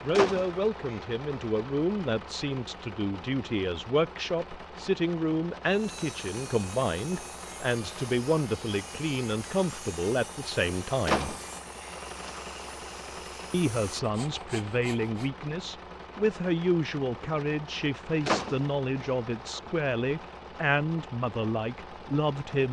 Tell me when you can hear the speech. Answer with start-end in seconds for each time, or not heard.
0.0-11.3, 13.5-22.6.